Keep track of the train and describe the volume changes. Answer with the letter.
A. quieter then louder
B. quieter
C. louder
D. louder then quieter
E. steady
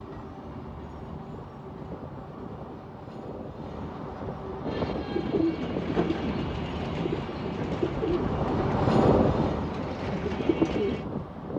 C.